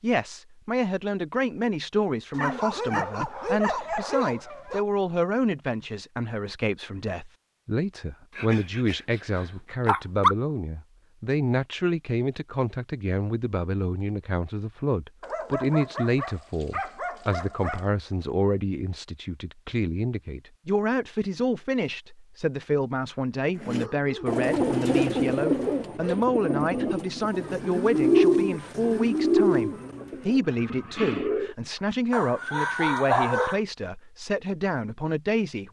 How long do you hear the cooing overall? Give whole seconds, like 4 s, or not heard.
8 s.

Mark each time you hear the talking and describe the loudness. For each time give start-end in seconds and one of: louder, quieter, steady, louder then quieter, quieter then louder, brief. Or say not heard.
0.0-35.6 steady.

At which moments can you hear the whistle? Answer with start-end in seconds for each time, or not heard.
not heard.